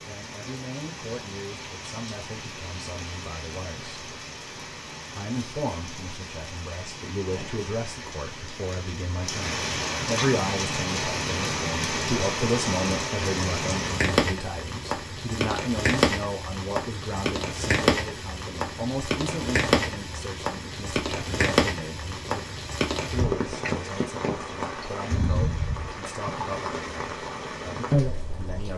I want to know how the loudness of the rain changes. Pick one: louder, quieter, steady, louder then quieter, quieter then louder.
louder.